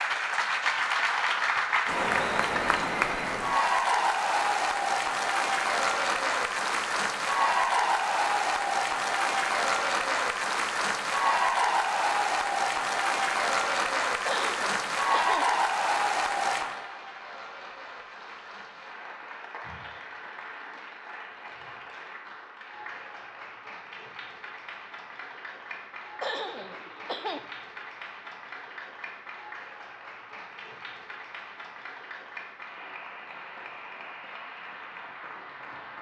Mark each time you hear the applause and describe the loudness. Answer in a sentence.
You can hear the applause from 0.0 to 35.9 s, getting quieter.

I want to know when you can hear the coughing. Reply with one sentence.
The coughing can be heard from 14.2 to 15.4 s and from 26.2 to 27.4 s.